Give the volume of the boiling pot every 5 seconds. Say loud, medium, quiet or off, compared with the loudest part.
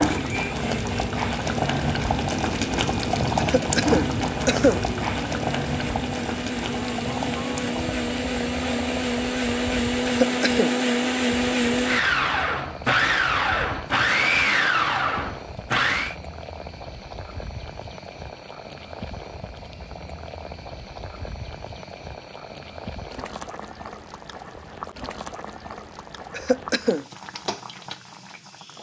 loud, medium, quiet, quiet, quiet, quiet.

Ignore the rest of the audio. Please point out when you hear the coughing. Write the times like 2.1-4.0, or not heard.
3.4-4.8, 10.1-10.8, 26.3-27.1.